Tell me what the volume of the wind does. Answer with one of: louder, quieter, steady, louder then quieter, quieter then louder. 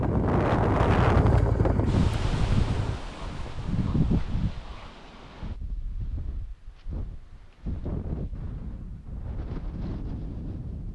quieter.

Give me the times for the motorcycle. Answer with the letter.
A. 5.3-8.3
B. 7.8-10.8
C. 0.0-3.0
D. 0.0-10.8
C.